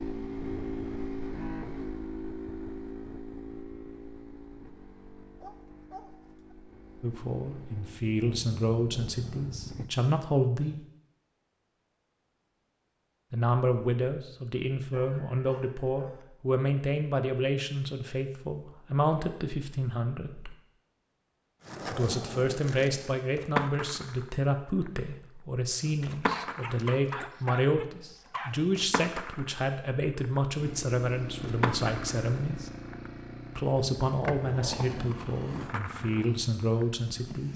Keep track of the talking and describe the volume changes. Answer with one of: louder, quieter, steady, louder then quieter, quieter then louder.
steady.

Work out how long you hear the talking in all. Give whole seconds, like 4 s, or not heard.
26 s.